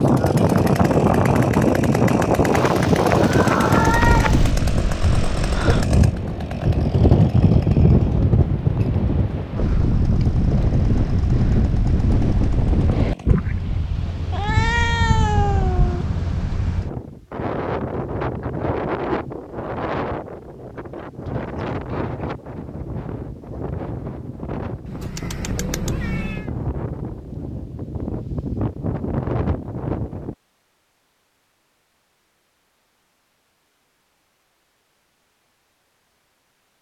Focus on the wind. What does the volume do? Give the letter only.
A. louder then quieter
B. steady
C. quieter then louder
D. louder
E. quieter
E.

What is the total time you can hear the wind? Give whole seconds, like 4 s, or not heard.
30 s.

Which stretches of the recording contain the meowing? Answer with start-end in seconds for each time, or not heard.
2.5-4.5, 14.3-16.1, 24.9-26.4.